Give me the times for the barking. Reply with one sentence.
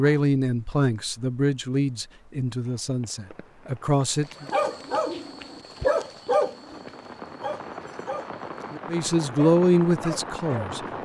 You can hear the barking from 4.3 to 10.8 s.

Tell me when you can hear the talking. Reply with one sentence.
You can hear the talking from 0.0 to 4.5 s and from 8.8 to 10.8 s.